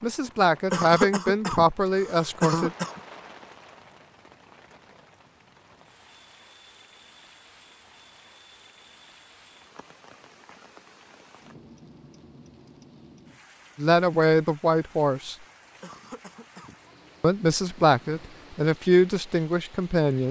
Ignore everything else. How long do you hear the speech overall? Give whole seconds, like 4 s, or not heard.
7 s.